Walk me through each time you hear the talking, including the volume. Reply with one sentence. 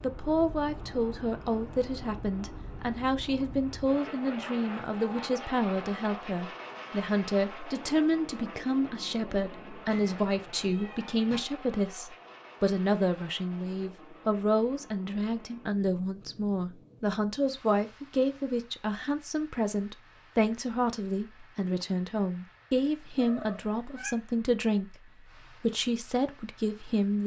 You can hear the talking from 0.0 to 27.2 s, at a steady volume.